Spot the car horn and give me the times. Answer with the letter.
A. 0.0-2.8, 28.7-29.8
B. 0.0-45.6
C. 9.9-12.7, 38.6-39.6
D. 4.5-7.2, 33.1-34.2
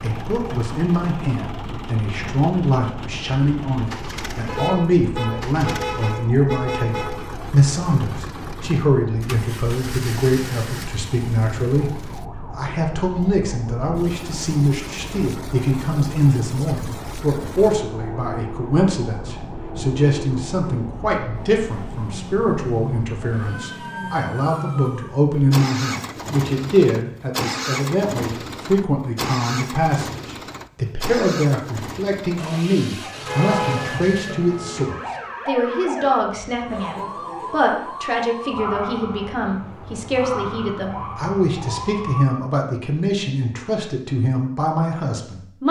D.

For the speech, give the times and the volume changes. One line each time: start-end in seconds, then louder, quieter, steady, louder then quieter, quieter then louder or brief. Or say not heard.
0.0-45.6 steady.